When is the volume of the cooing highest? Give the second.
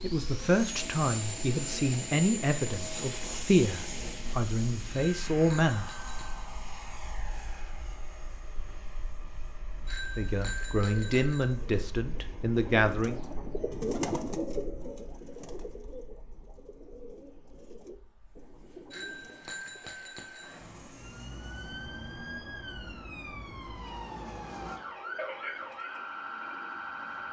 14 s.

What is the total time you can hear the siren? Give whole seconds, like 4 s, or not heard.
7 s.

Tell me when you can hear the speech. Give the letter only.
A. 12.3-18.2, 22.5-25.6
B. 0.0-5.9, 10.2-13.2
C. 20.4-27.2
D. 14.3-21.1
B.